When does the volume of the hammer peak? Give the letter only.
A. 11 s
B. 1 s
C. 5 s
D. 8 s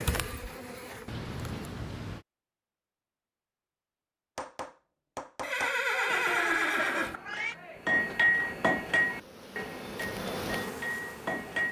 D.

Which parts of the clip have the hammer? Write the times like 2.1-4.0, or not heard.
4.3-11.6.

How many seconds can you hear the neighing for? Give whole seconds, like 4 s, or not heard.
2 s.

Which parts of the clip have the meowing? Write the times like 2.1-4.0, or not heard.
1.1-2.2, 6.3-7.5.